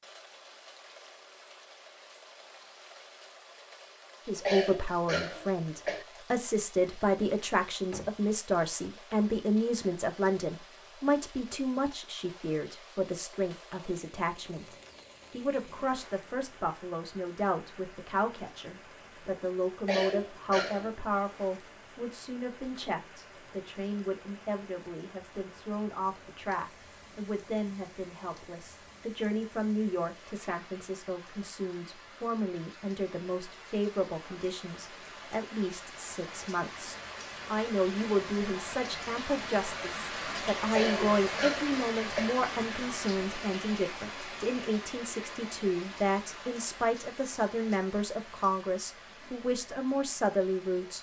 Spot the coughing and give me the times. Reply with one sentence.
You can hear the coughing from 4.5 to 6.0 s, from 19.9 to 21.1 s and from 40.7 to 42.4 s.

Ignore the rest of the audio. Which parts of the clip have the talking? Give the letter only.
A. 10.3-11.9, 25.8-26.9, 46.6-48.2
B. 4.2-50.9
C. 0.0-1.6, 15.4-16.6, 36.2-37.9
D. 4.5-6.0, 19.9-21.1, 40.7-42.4
B.